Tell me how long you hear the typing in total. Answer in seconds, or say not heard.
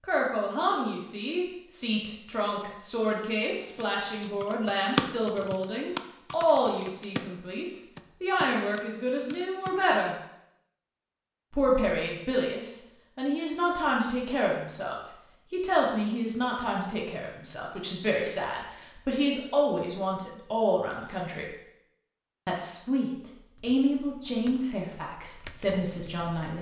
9 s.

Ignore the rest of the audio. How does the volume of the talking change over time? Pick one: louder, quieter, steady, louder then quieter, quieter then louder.
steady.